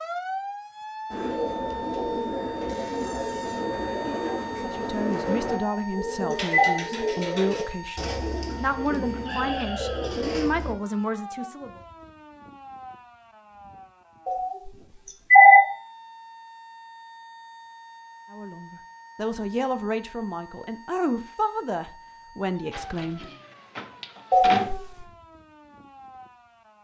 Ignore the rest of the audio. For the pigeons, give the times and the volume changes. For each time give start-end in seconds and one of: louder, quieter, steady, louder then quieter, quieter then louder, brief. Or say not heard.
1.1-10.8 steady.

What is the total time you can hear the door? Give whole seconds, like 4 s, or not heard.
3 s.